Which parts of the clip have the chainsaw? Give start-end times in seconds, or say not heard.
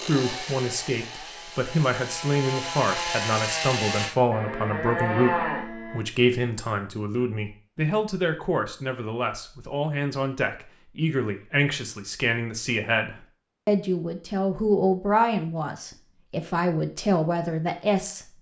0.0-4.2.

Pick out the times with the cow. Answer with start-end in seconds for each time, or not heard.
4.3-6.0.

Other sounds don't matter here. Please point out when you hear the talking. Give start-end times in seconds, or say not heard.
0.0-18.2.